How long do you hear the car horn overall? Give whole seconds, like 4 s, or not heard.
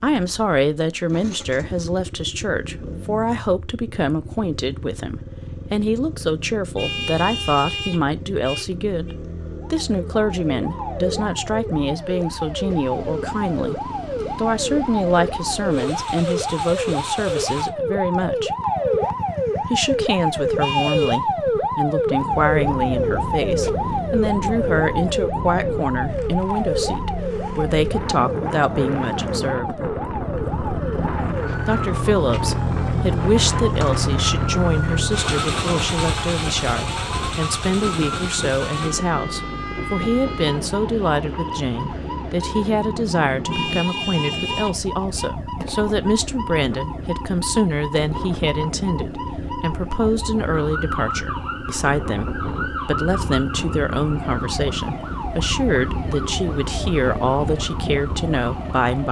5 s.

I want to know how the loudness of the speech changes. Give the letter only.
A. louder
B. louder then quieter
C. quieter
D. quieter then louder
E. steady
E.